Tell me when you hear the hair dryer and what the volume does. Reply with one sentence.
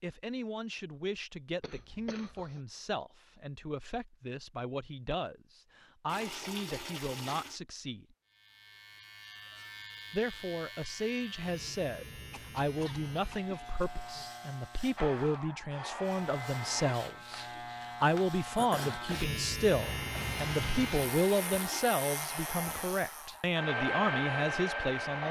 The hair dryer can be heard briefly from 14.9 to 16.9 s; and from 19.8 to 25.2 s, getting louder.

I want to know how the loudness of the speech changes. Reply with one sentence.
The loudness of the speech goes up.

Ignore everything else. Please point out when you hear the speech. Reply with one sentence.
You can hear the speech from 0.0 to 8.2 s and from 10.1 to 25.2 s.